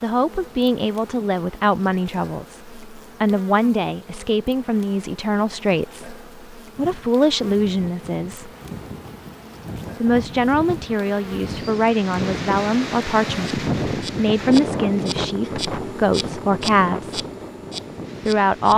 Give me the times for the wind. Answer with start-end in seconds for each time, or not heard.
6.8-18.7.